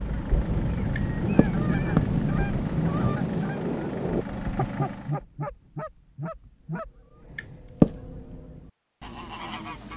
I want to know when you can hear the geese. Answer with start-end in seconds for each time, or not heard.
0.0-9.9.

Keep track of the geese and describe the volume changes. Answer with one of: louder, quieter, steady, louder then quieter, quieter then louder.
quieter.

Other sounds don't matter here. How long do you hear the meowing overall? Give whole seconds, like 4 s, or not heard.
2 s.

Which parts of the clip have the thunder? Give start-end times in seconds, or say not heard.
0.3-4.2.